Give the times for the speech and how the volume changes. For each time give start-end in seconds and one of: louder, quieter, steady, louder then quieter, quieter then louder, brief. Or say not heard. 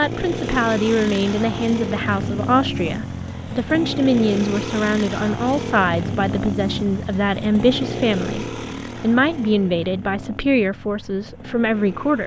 0.0-12.2 steady.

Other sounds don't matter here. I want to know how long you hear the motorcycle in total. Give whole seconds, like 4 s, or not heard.
12 s.